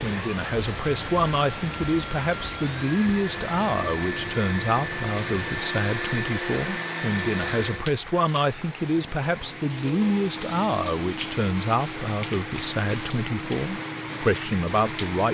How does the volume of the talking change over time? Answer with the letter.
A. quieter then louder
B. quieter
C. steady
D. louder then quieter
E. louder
C.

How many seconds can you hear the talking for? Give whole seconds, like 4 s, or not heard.
15 s.